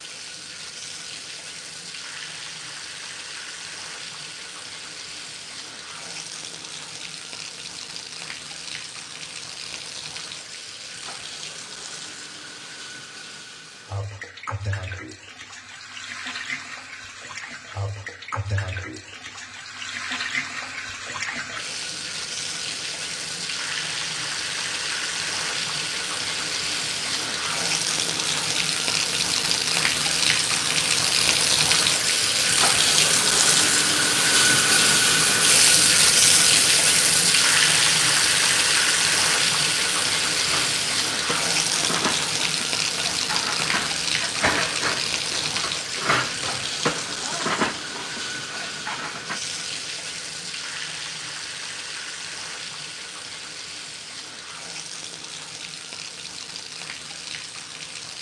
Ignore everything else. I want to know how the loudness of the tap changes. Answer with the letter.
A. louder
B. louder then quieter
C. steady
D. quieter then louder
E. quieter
B.